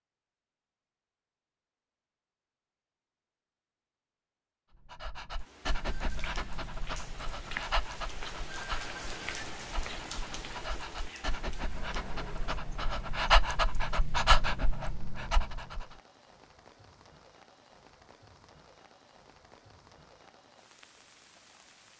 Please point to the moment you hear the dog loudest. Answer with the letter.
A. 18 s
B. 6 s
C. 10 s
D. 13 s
D.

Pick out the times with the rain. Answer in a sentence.
You can hear the rain from 5.3 to 21.9 s.